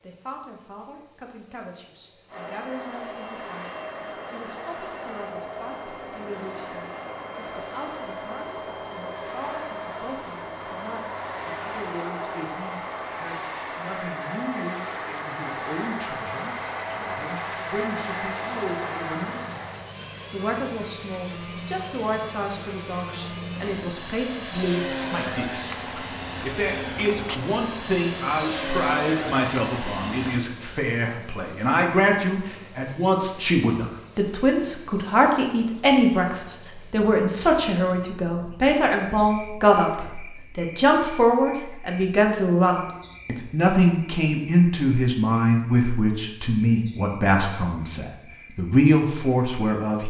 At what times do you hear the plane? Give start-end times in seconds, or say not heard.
2.3-30.4.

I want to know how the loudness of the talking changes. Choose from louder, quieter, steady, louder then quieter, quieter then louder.
louder.